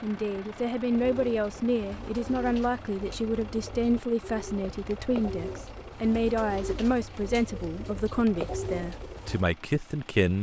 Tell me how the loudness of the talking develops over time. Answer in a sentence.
The volume of the talking stays about the same.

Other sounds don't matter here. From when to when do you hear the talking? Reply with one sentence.
You can hear the talking from 0.0 to 10.3 s.